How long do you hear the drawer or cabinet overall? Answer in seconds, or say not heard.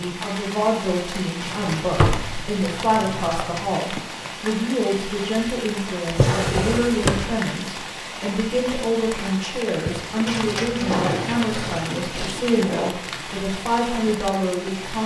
4 s.